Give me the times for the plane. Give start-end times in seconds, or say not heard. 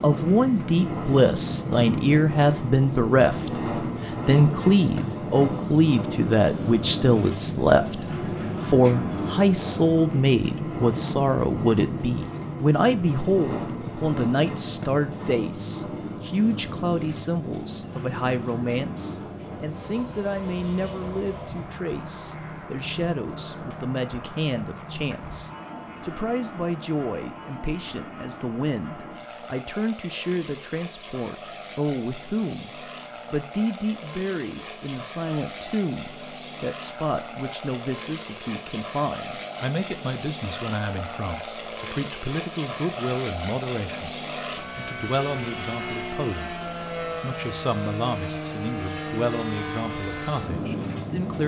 0.0-51.4.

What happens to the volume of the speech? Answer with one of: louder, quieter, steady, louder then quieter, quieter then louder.
quieter.